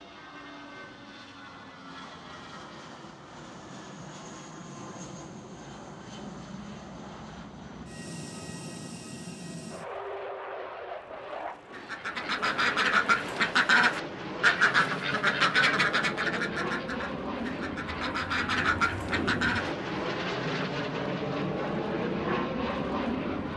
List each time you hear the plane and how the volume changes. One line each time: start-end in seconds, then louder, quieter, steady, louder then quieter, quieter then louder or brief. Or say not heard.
0.0-23.5 louder.